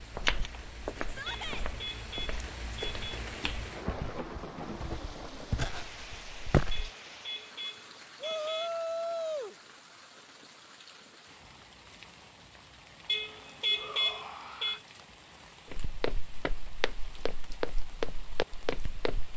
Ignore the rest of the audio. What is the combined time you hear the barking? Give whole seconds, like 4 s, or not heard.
not heard.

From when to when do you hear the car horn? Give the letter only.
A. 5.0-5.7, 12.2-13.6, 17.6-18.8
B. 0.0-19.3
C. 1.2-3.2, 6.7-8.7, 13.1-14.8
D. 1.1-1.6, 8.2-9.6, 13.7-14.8
C.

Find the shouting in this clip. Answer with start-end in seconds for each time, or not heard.
1.1-1.6, 8.2-9.6, 13.7-14.8.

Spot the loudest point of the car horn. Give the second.
14 s.